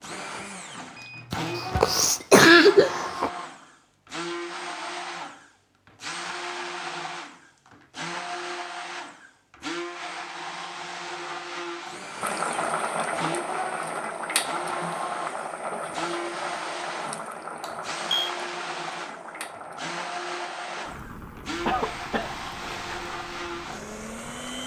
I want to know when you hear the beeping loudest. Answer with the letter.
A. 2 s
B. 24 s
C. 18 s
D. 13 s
C.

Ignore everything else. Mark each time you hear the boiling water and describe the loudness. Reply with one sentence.
The boiling water can be heard from 12.2 to 24.6 s, getting quieter.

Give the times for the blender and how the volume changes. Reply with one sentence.
The blender can be heard from 0.0 to 24.6 s, at a steady volume.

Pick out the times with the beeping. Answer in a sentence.
The beeping can be heard from 0.9 to 1.8 s and from 17.6 to 18.3 s.